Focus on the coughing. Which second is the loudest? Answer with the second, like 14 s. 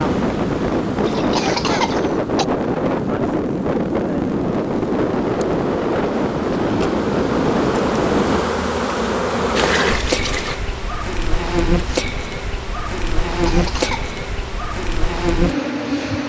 2 s.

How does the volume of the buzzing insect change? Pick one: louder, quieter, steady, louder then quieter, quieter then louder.
louder.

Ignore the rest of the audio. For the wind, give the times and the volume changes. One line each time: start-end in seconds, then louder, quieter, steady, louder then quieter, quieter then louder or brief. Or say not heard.
0.0-8.4 steady.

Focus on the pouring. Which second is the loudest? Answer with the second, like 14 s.
10 s.